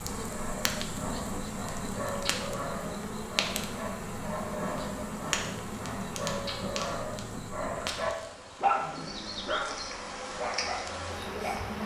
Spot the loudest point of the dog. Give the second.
9 s.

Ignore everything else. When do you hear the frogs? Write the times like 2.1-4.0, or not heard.
not heard.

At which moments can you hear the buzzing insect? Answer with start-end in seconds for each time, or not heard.
0.0-11.8.